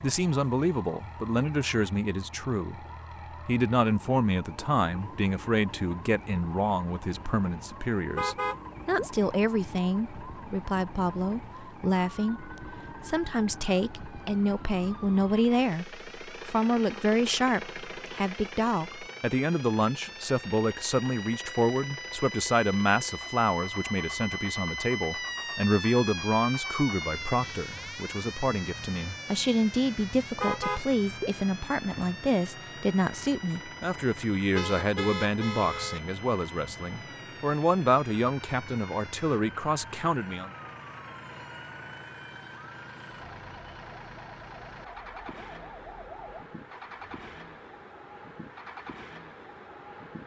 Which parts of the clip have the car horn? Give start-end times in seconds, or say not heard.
8.2-9.1, 30.4-31.3, 34.5-36.0.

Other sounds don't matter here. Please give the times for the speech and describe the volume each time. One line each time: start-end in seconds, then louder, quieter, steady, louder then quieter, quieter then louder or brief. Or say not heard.
0.0-2.8 brief
3.5-40.5 steady.